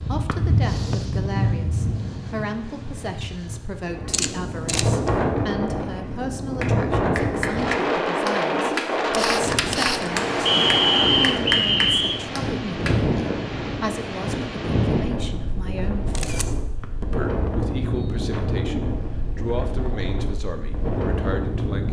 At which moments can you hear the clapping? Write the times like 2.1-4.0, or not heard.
6.6-12.9.